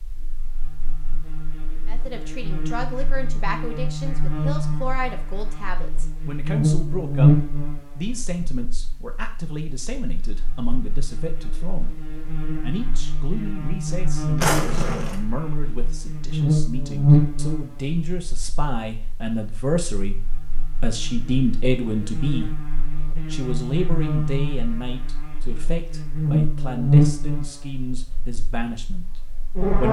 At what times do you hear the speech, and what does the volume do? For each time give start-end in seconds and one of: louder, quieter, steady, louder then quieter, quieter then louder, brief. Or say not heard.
1.9-22.5 louder
23.3-29.8 quieter.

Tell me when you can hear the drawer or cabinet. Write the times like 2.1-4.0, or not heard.
14.3-15.2.